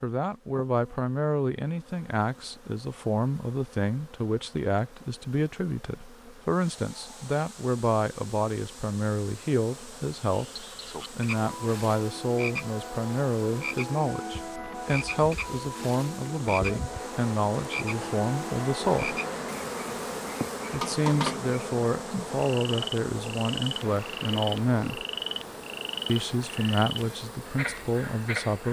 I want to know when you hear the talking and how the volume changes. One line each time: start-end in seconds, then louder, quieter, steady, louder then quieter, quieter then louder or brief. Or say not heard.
0.0-19.2 steady
20.7-25.1 steady
26.1-28.6 brief.